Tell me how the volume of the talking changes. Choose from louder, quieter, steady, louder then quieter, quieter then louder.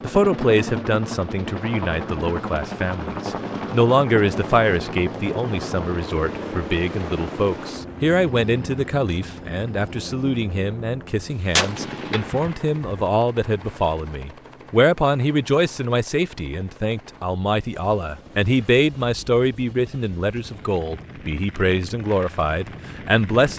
steady.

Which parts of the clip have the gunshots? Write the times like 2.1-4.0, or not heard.
11.2-12.9.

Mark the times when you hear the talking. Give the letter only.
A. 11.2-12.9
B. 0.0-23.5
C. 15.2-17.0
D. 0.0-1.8
B.